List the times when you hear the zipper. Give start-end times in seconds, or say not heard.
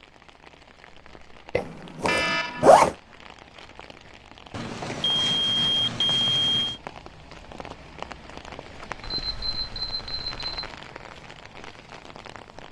1.6-3.0.